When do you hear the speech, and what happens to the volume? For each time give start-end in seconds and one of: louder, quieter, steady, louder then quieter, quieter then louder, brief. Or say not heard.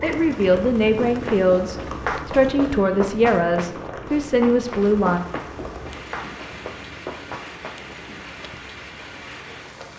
0.0-5.2 steady.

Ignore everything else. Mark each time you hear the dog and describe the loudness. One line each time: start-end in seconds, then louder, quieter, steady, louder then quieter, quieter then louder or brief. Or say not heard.
not heard.